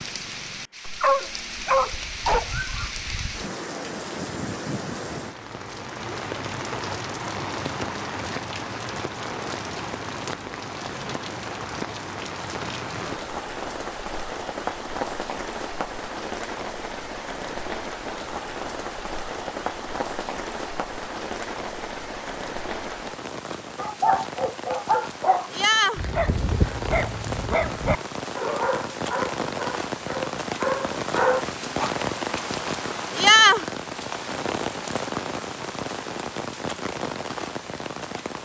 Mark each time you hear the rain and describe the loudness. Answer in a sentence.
You can hear the rain from 0.0 to 38.4 s, getting louder.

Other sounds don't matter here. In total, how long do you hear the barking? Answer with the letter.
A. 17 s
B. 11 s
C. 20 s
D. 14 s
B.